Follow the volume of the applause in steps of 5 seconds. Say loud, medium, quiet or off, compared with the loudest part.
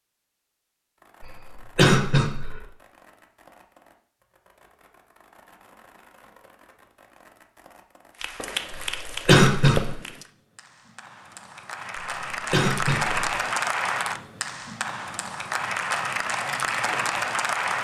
off, medium, loud, loud.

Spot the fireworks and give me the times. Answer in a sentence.
The fireworks can be heard from 0.9 to 10.2 s.